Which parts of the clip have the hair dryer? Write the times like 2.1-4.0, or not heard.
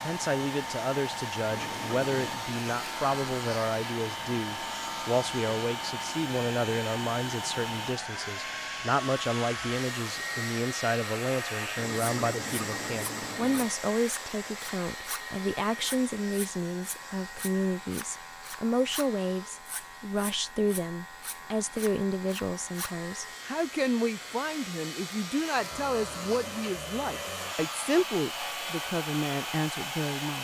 0.0-30.3.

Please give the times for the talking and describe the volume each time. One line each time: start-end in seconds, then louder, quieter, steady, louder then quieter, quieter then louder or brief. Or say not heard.
0.0-30.3 steady.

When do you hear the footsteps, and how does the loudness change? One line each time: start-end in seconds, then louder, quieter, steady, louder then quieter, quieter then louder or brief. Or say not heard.
not heard.